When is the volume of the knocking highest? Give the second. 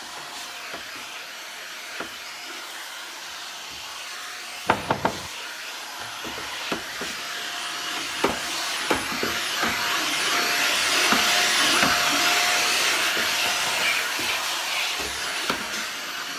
5 s.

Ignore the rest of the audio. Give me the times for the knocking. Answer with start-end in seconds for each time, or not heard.
4.7-5.3, 13.4-14.1.